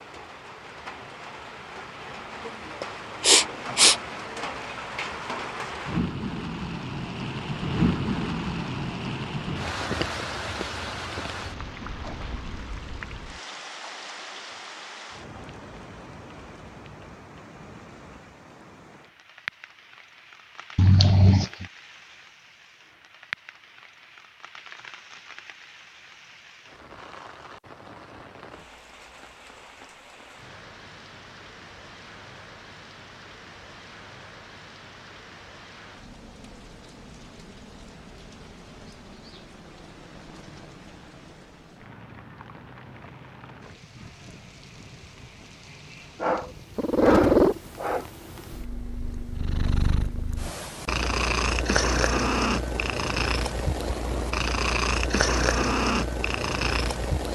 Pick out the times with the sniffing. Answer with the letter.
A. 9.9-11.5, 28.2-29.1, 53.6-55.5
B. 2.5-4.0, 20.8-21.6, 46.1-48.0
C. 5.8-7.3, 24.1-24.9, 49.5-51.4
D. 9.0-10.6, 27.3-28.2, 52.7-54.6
B.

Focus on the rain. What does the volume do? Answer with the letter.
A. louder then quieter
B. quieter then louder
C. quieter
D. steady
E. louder
C.